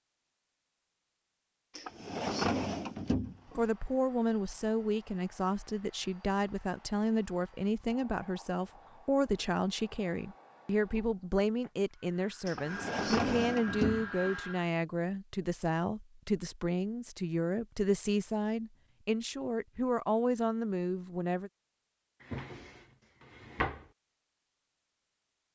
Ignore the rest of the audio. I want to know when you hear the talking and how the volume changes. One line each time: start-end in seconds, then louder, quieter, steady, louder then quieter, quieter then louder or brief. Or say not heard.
3.5-21.5 steady.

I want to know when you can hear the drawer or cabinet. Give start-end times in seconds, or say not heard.
1.8-3.6, 12.4-14.3, 22.2-23.9.